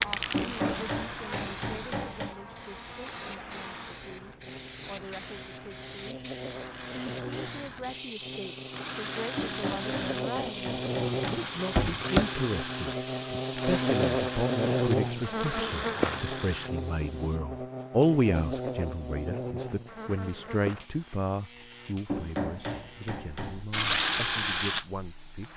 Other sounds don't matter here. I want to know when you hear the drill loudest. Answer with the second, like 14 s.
24 s.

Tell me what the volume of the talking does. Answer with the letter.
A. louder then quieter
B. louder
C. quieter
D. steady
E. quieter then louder
A.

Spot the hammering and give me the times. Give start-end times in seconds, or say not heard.
0.3-2.4, 9.3-12.2, 22.1-23.6.